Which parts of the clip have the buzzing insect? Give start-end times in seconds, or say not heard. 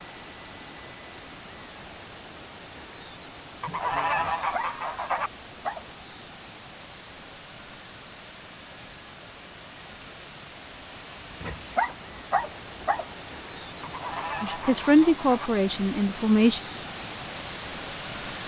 not heard.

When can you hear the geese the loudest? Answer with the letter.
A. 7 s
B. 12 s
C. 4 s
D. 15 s
C.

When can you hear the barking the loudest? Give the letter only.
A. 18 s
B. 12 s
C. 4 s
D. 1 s
B.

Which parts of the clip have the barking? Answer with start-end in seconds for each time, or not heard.
4.2-5.8, 11.4-13.1.